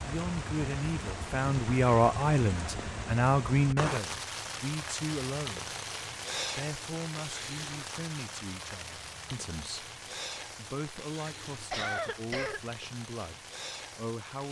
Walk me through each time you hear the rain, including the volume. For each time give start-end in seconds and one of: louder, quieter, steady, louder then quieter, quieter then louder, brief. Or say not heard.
0.0-14.4 quieter.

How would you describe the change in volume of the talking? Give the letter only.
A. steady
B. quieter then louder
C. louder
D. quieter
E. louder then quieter
D.